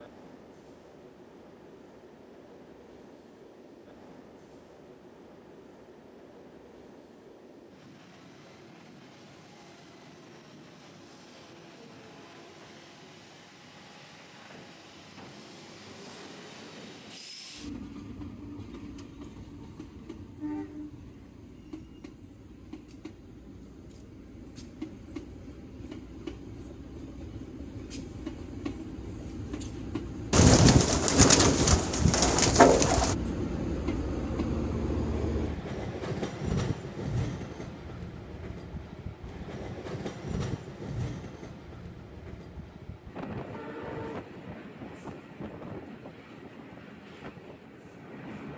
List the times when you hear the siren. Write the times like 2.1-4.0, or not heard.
not heard.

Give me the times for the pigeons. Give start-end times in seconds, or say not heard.
30.3-33.1.